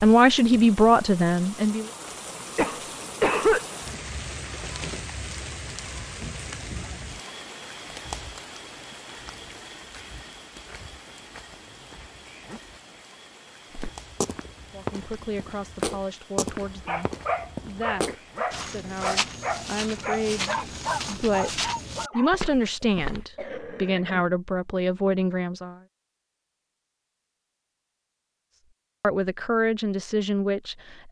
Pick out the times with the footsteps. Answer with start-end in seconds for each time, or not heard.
13.7-23.2.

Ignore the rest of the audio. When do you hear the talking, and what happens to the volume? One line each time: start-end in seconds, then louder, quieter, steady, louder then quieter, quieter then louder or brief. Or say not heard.
0.0-1.9 brief
14.7-25.8 louder
29.0-31.0 brief.